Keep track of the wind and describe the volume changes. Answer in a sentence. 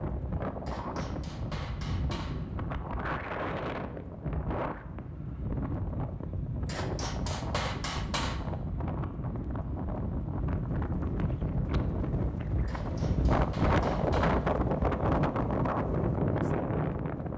The volume of the wind goes up.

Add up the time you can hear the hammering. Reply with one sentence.
You can hear the hammering for 5 seconds altogether.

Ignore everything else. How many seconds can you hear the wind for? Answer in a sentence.
You can hear the wind for 17 seconds altogether.